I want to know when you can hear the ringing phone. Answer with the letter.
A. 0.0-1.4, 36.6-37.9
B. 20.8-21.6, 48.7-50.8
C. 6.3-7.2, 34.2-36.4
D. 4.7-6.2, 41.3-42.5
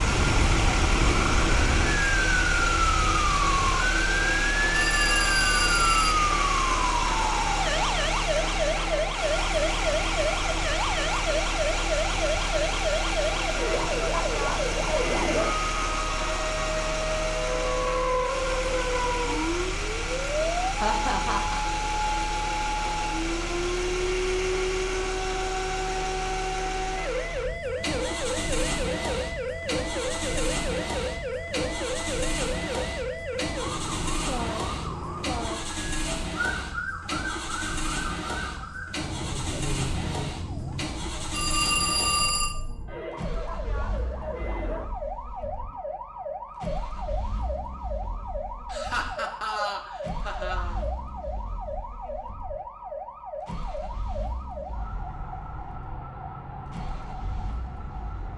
D.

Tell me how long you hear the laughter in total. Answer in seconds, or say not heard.
3 s.